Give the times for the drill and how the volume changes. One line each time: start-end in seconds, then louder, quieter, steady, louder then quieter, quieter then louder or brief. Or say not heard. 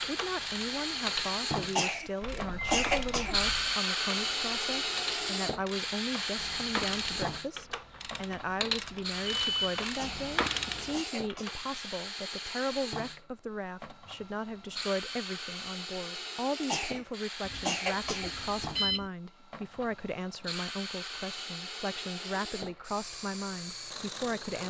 0.0-24.6 quieter.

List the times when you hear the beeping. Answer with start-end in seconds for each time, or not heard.
2.2-3.8, 9.2-9.8, 17.4-19.1.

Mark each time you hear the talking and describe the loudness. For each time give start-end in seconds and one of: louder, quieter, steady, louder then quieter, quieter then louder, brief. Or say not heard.
0.1-24.6 steady.